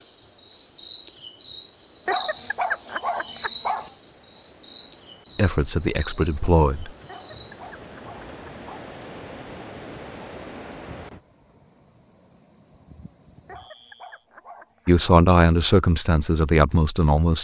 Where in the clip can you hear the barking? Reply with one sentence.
The barking can be heard from 2.0 to 3.9 s, from 7.0 to 8.9 s and from 13.4 to 15.1 s.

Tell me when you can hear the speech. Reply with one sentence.
You can hear the speech from 5.3 to 6.9 s and from 14.8 to 17.3 s.